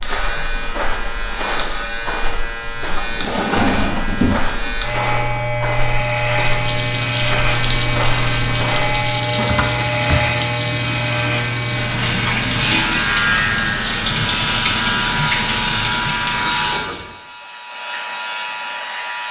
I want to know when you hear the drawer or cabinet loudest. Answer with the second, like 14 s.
4 s.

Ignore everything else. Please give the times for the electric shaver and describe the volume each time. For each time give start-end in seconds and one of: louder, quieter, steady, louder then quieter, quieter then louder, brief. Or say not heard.
0.0-19.2 steady.